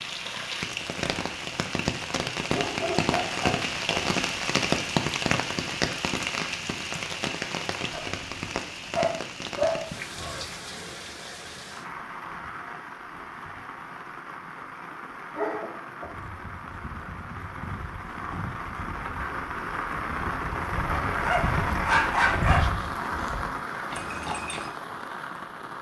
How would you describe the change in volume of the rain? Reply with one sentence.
The volume of the rain goes down, then up.